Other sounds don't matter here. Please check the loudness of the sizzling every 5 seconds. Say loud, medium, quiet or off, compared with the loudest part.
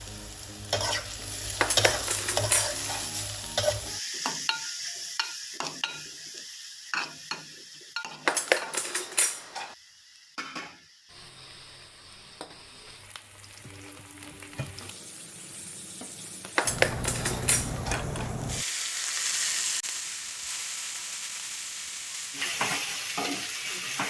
loud, medium, quiet, loud, loud.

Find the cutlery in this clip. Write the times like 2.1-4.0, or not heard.
1.6-3.0, 8.2-9.8, 16.6-18.1.